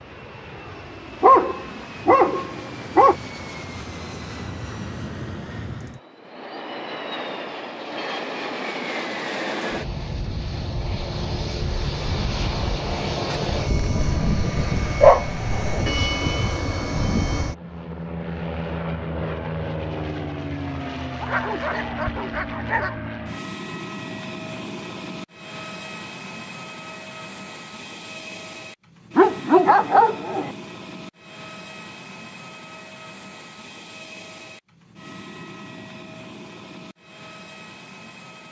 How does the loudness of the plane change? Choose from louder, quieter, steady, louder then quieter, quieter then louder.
louder then quieter.